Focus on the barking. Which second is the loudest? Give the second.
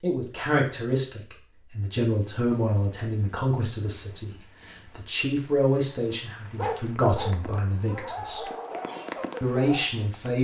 7 s.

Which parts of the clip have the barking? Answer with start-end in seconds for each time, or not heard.
6.5-10.1.